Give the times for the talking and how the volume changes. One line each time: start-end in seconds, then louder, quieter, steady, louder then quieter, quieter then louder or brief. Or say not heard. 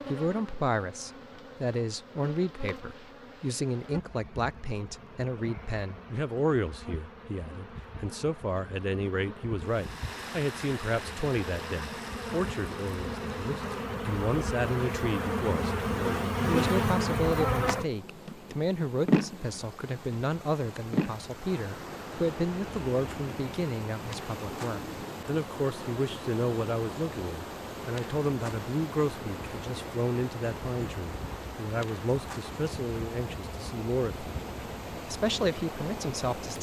0.1-34.3 steady
35.0-36.5 brief.